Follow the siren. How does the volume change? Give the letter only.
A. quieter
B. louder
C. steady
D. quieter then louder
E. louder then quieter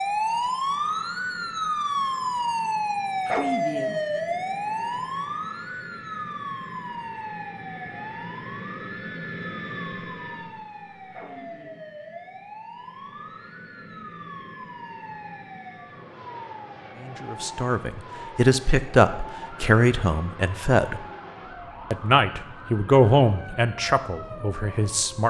A.